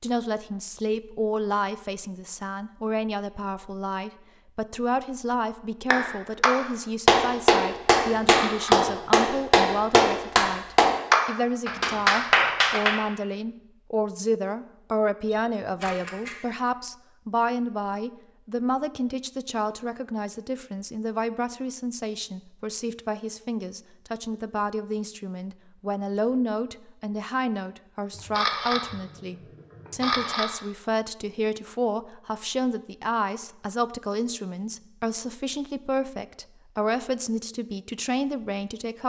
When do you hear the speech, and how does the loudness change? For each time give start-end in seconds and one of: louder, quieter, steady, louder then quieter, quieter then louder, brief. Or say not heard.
0.0-39.0 steady.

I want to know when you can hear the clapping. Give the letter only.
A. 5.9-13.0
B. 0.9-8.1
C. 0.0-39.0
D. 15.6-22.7
A.